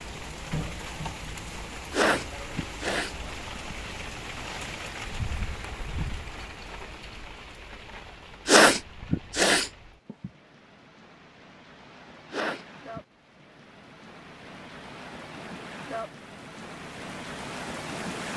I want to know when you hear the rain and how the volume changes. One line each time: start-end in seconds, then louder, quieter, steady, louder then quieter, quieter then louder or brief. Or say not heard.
0.0-18.3 quieter then louder.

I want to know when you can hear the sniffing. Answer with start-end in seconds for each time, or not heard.
1.9-3.8, 8.4-10.3, 12.3-13.0.